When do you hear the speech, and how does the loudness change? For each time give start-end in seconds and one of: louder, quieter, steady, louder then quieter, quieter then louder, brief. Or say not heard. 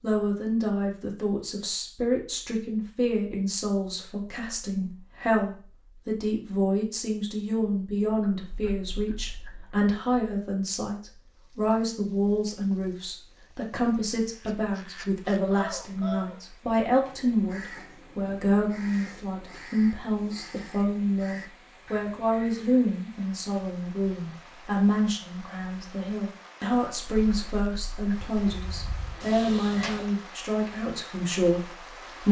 0.0-32.2 steady.